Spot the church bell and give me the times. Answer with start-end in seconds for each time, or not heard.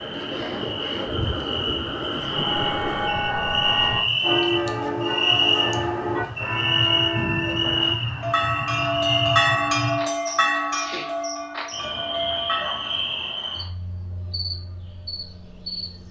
2.1-13.1.